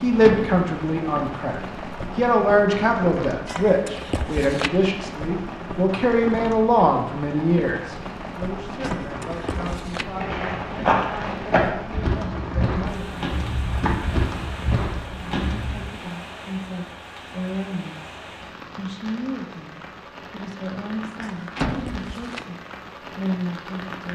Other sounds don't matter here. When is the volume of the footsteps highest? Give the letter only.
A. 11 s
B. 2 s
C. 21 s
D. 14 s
A.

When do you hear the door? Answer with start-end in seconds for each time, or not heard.
0.2-0.7, 8.8-9.2, 21.6-22.1.